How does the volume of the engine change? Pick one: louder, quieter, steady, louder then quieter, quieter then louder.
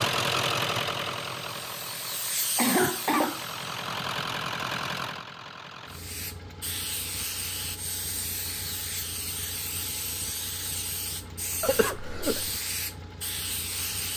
quieter.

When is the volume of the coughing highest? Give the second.
3 s.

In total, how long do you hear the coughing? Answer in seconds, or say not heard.
2 s.